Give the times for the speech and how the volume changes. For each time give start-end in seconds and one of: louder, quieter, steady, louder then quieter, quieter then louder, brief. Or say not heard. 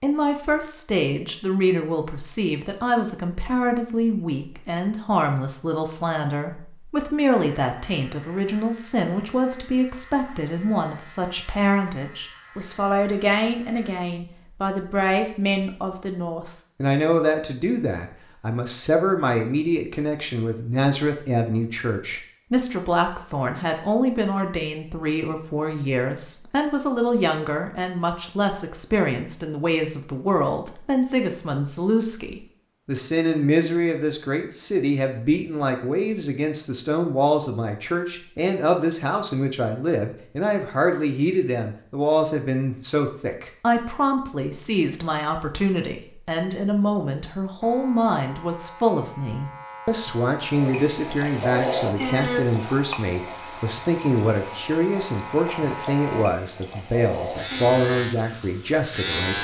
0.0-59.3 steady.